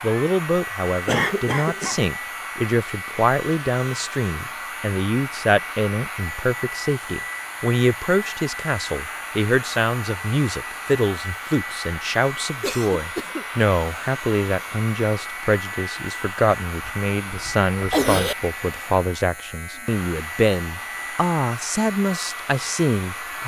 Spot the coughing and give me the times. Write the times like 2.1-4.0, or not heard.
1.1-2.0, 12.6-13.4, 16.9-18.4.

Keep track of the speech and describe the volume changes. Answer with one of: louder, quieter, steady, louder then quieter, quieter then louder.
steady.